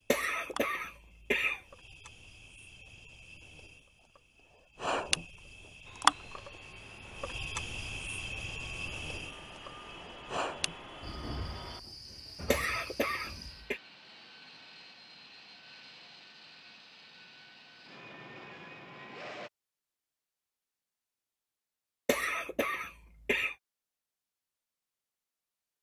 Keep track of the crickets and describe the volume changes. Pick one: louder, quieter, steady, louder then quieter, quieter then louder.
louder then quieter.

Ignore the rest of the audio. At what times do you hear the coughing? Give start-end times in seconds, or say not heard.
0.1-1.6, 12.5-13.8, 22.1-23.6.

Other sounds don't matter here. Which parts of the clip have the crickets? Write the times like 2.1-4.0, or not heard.
0.0-13.7.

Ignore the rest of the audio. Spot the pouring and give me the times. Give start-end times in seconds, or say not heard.
not heard.